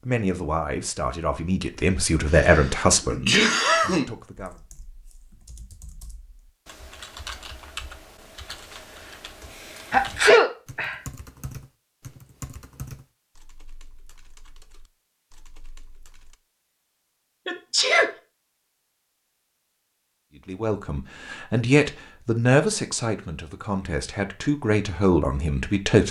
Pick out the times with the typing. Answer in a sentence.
You can hear the typing from 4.3 to 16.4 s.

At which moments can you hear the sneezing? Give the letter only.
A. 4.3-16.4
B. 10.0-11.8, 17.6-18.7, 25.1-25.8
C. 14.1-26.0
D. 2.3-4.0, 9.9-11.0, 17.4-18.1
D.